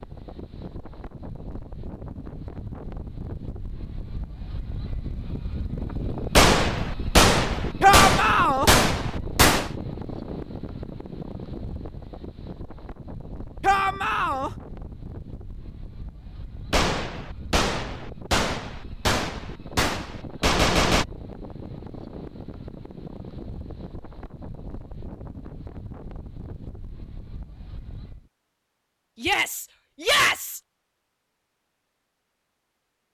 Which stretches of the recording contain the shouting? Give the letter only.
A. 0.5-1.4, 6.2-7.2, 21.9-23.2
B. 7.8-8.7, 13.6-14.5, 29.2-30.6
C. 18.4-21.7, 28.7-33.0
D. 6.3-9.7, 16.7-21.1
B.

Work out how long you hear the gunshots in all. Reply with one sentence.
You can hear the gunshots for 8 seconds altogether.